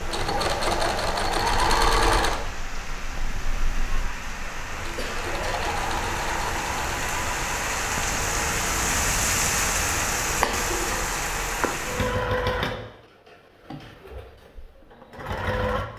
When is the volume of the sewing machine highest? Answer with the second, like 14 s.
2 s.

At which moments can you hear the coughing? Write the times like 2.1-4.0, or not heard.
5.0-5.5, 10.4-11.1.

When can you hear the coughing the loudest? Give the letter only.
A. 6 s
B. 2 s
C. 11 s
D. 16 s
C.